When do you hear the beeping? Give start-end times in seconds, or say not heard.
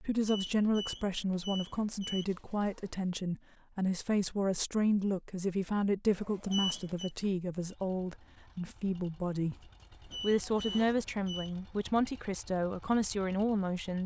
0.2-2.2, 6.5-7.1, 10.1-11.5.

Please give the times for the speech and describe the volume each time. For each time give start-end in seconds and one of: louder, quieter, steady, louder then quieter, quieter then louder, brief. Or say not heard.
0.0-14.0 steady.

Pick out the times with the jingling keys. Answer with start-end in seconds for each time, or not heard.
not heard.